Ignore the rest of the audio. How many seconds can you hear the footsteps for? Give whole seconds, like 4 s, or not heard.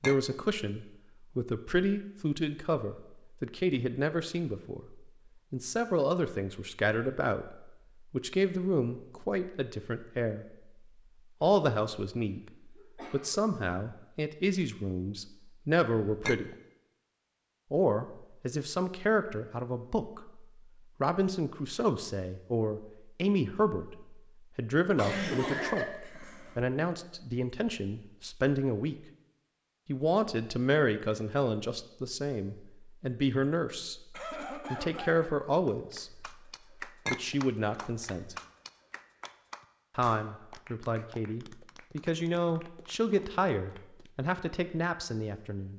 not heard.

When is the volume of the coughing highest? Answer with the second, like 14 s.
25 s.